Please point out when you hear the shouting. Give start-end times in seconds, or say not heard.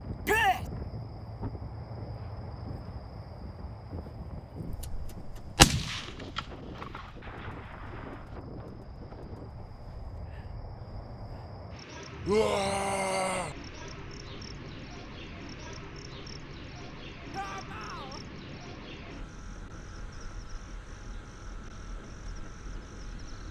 0.2-0.7, 12.2-13.6, 17.3-18.2.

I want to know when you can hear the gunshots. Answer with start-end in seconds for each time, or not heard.
4.7-8.3.